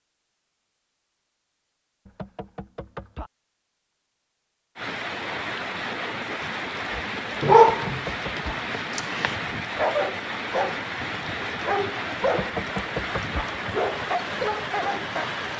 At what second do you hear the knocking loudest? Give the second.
13 s.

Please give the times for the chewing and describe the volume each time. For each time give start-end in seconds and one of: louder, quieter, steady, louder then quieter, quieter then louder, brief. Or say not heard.
not heard.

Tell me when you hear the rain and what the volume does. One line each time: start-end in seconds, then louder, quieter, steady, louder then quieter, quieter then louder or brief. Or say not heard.
4.8-15.5 steady.